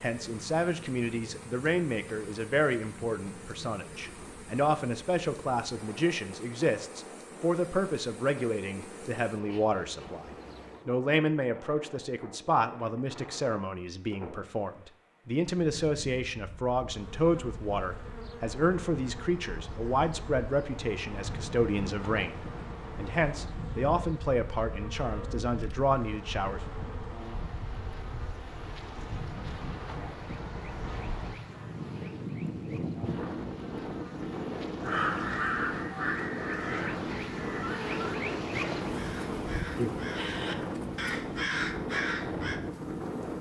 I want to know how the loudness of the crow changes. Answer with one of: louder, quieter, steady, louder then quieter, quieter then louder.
quieter then louder.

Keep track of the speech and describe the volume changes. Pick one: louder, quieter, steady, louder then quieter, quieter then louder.
steady.